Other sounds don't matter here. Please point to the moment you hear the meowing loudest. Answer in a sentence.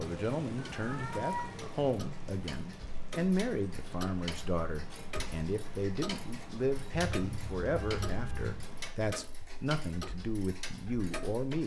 The loudest moment of the meowing is at 1 second.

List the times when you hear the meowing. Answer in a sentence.
The meowing can be heard from 0.8 to 1.8 s and from 6.9 to 8.7 s.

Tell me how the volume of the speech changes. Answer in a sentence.
The loudness of the speech stays about the same.